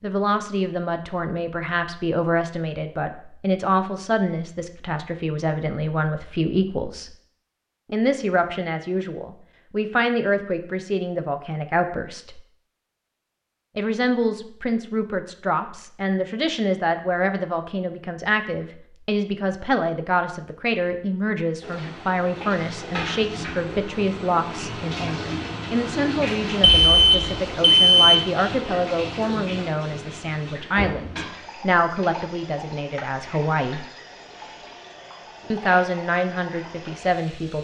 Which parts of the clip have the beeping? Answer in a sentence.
The beeping can be heard from 26.6 to 28.2 s.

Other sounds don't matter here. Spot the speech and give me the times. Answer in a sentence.
The speech can be heard from 0.0 to 7.1 s, from 7.9 to 12.4 s, from 13.8 to 33.9 s and from 35.5 to 37.5 s.